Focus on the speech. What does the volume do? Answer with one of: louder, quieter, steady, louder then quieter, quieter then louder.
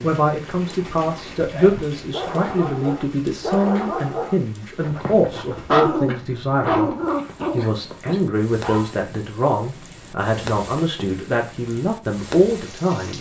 steady.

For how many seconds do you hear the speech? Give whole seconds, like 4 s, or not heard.
13 s.